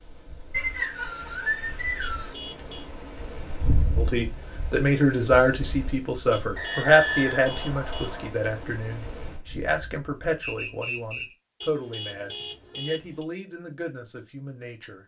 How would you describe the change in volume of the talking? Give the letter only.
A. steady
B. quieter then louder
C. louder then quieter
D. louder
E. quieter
E.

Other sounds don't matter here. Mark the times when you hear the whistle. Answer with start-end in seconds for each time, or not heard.
0.5-2.4, 6.5-8.3, 10.4-11.3.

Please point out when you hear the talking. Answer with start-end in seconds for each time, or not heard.
4.0-15.0.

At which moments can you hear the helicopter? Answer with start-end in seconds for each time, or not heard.
not heard.